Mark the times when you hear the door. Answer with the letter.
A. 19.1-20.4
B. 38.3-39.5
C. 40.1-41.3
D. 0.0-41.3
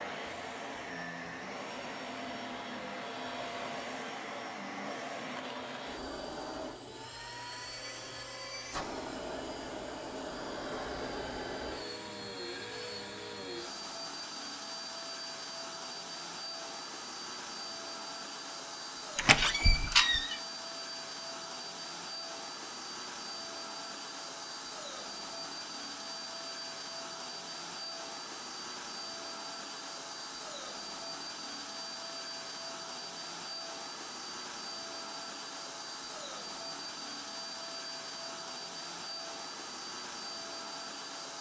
A.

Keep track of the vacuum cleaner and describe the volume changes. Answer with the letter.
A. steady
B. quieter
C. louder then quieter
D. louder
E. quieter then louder
A.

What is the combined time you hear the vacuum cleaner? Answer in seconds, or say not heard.
41 s.